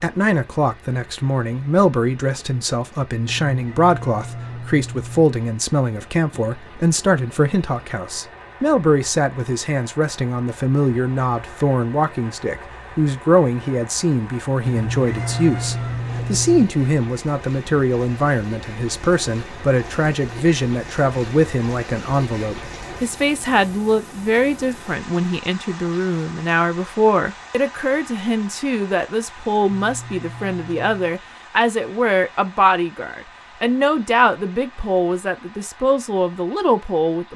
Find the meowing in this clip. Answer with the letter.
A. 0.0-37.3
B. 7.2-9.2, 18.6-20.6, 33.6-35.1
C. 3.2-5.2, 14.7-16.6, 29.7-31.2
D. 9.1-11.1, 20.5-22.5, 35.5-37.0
C.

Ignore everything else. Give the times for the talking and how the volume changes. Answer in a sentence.
The talking can be heard from 0.0 to 37.3 s, at a steady volume.